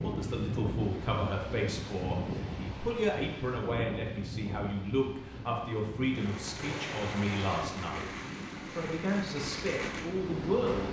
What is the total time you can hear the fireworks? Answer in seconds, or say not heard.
5 s.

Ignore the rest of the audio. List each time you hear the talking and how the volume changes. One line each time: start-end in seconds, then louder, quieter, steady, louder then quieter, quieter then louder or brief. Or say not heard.
0.0-10.8 steady.